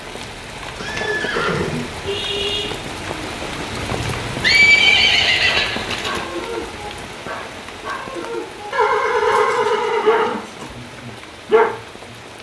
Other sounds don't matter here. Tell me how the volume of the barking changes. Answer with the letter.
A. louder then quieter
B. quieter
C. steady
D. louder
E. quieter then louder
D.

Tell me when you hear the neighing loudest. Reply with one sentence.
The volume of the neighing peaks at 5 seconds.